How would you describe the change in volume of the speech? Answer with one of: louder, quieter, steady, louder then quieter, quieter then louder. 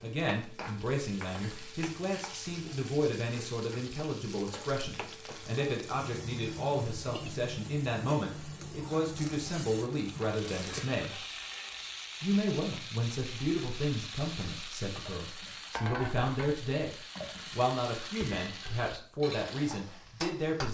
steady.